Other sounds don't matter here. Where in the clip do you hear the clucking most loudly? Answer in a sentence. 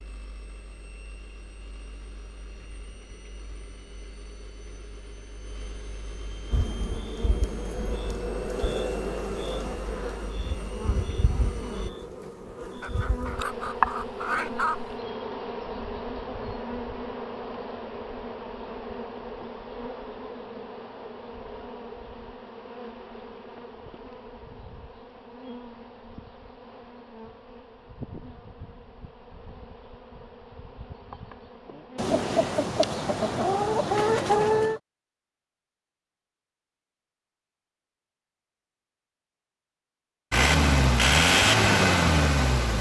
The volume of the clucking peaks at 34 seconds.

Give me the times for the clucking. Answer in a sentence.
The clucking can be heard from 12.8 to 14.9 s and from 31.9 to 34.8 s.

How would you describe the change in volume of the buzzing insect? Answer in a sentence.
The loudness of the buzzing insect goes down.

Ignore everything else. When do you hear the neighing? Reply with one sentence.
The neighing can't be heard in this clip.